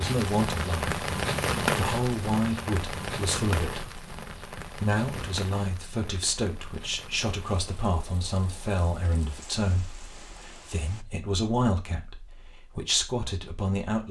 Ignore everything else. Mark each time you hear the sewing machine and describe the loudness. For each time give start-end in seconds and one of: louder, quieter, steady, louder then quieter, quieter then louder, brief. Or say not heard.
not heard.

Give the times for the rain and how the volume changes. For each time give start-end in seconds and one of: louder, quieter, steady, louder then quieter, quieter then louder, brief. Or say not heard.
0.0-11.1 quieter.